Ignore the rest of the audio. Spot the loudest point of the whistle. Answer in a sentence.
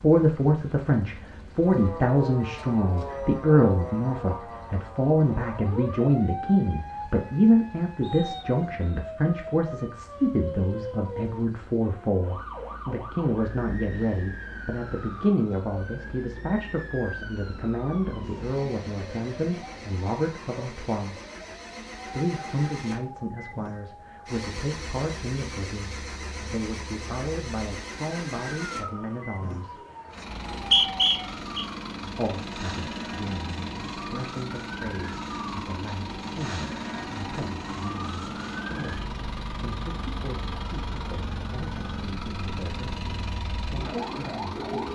The loudest moment of the whistle is at 31 seconds.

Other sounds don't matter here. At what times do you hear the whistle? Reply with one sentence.
The whistle can be heard from 8.0 to 9.0 s and from 30.3 to 31.6 s.